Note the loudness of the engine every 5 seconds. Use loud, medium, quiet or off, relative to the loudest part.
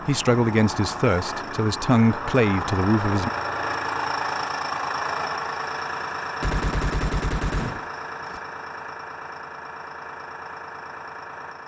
loud, loud, medium.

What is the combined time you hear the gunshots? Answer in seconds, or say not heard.
2 s.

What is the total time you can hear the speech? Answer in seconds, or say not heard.
3 s.